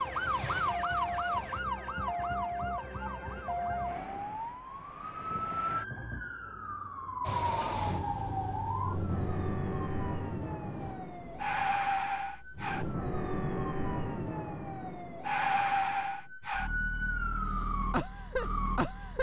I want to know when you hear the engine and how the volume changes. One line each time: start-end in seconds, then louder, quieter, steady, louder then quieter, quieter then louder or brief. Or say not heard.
0.0-1.6 brief
7.2-12.9 quieter.